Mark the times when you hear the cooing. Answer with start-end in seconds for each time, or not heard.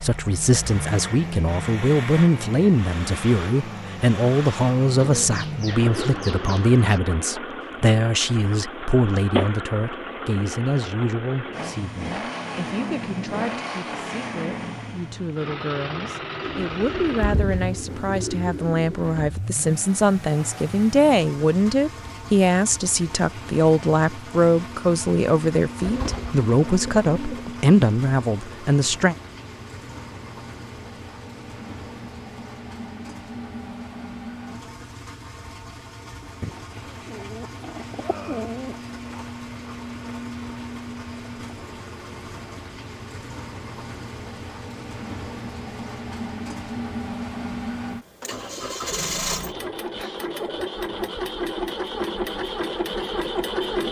5.0-7.0, 16.4-19.4, 25.8-27.4, 36.4-39.2, 48.2-50.7.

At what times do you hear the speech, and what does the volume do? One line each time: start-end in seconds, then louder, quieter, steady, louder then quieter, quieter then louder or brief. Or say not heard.
0.0-29.1 quieter then louder.